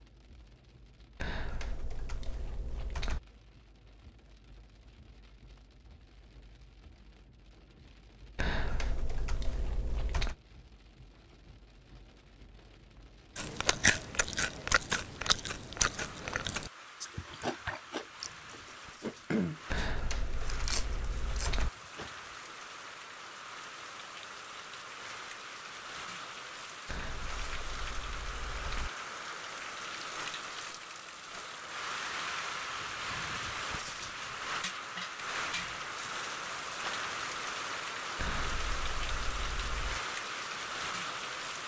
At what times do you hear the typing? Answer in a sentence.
You can hear the typing from 1.1 to 3.2 s, from 8.3 to 10.3 s, from 19.7 to 21.7 s, from 26.9 to 28.9 s and from 38.1 to 40.0 s.